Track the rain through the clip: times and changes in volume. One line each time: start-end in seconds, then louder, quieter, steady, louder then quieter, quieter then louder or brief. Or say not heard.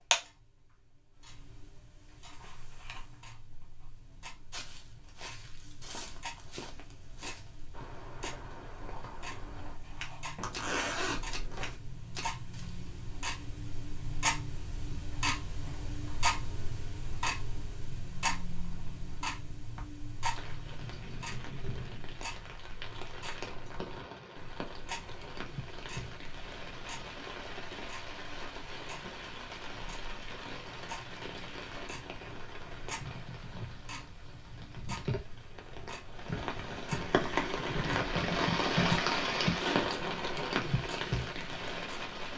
20.3-42.3 louder.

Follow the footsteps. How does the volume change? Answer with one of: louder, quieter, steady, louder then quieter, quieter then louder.
louder.